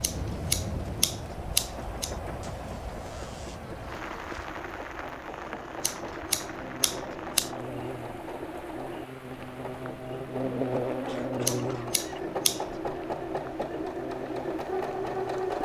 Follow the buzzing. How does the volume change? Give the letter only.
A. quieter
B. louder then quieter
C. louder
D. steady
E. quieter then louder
B.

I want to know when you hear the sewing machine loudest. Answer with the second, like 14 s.
15 s.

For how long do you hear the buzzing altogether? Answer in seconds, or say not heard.
13 s.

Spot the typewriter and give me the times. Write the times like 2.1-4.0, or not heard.
not heard.